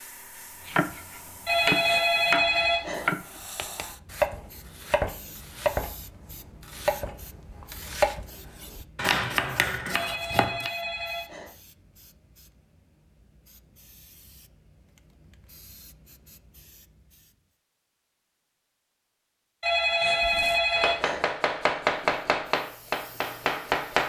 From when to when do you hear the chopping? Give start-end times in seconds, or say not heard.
0.7-10.7, 20.2-24.0.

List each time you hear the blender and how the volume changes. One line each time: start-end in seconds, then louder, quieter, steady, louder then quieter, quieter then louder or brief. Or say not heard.
not heard.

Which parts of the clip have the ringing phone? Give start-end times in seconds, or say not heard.
1.4-3.0, 9.9-11.5, 19.6-21.2.